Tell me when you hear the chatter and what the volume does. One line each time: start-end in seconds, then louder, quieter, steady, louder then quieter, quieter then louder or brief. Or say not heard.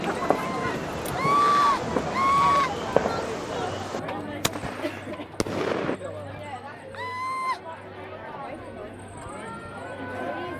0.0-10.5 quieter.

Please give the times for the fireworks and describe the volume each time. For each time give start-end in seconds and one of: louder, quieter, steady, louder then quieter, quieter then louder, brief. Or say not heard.
0.0-6.0 louder then quieter.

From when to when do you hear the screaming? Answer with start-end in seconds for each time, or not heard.
0.1-2.7, 7.0-7.6.